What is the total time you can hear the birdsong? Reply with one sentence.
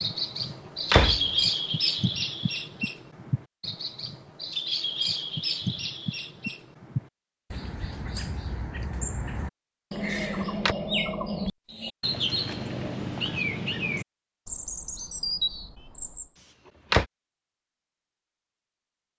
The birdsong can be heard for 16 seconds in total.